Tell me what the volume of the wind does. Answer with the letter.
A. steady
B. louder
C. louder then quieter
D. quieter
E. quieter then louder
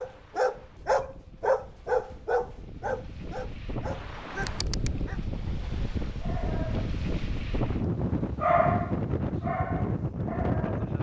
B.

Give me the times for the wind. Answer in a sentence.
The wind can be heard from 0.0 to 10.9 s.